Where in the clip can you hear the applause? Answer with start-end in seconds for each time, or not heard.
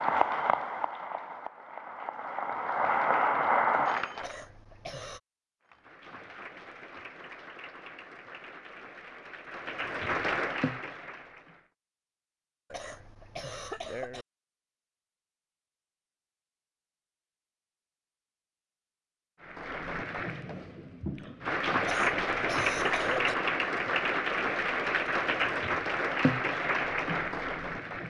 0.0-4.3, 5.7-11.7, 19.4-28.0.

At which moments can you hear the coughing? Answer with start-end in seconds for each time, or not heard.
4.2-5.2, 12.7-14.2, 21.8-23.4.